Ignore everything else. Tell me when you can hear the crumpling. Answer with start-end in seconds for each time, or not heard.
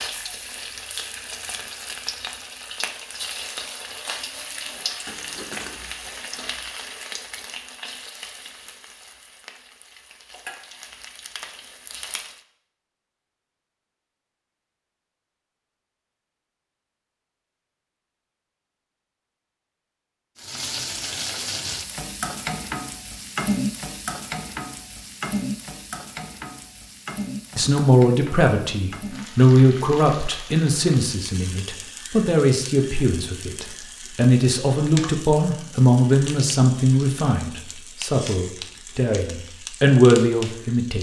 5.0-5.8.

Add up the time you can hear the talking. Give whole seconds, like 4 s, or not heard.
13 s.